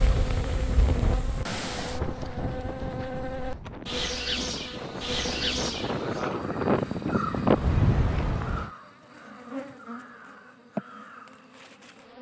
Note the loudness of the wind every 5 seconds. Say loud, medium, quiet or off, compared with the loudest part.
medium, loud, off.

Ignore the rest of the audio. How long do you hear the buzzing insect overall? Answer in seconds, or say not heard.
12 s.